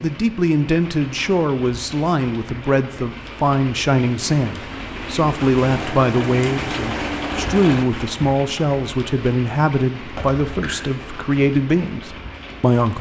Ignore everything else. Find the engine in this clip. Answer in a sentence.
You can hear the engine from 5.7 to 7.8 s.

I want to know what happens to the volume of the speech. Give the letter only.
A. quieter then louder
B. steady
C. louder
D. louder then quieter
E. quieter
B.